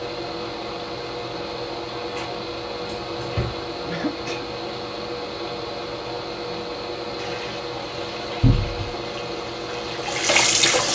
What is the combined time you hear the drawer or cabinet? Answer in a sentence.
The drawer or cabinet can be heard for 2 seconds in total.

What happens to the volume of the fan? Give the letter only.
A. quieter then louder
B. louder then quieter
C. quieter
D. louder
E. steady
E.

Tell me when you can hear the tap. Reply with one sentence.
The tap can be heard from 7.2 to 10.9 s.